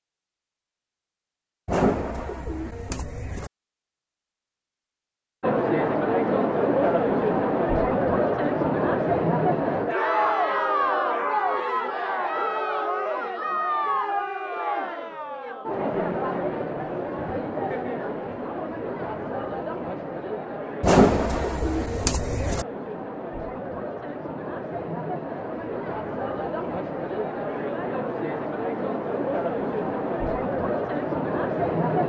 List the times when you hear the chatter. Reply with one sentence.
You can hear the chatter from 5.4 to 32.0 s.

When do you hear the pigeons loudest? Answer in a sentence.
The loudest moment of the pigeons is at 21 seconds.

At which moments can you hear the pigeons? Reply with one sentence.
You can hear the pigeons from 1.6 to 3.5 s and from 20.8 to 22.6 s.